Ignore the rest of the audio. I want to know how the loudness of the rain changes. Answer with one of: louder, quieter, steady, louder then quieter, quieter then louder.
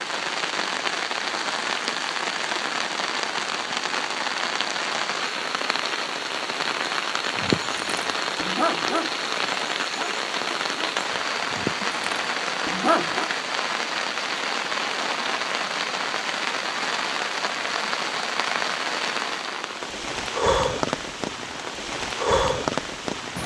steady.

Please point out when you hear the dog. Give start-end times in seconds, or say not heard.
7.3-9.1, 9.9-13.3.